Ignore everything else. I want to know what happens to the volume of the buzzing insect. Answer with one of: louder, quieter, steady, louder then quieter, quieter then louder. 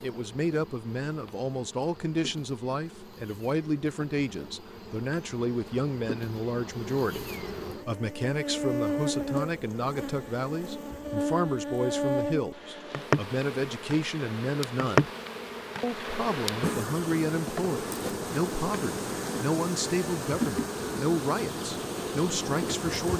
louder.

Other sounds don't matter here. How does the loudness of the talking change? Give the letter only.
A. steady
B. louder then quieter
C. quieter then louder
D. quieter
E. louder
A.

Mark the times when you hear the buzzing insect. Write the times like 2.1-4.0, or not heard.
0.0-23.1.